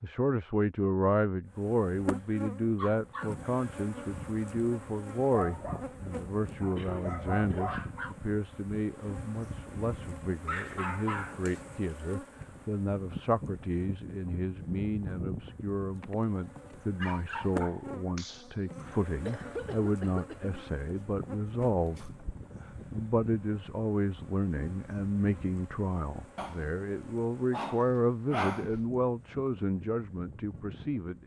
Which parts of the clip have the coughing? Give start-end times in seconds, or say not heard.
6.7-7.8, 19.2-20.7.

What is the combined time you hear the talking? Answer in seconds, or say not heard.
31 s.